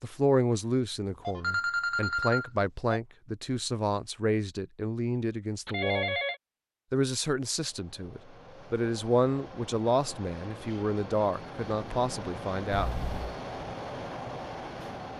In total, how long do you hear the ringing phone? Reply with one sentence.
You can hear the ringing phone for 3 seconds altogether.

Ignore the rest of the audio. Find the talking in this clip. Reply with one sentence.
You can hear the talking from 0.0 to 6.2 s and from 6.9 to 13.1 s.